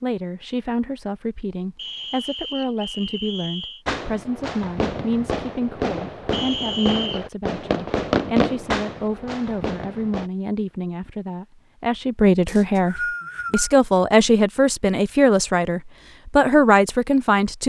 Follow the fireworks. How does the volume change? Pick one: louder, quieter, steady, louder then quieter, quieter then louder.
louder then quieter.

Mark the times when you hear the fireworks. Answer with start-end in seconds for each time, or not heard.
3.9-10.3.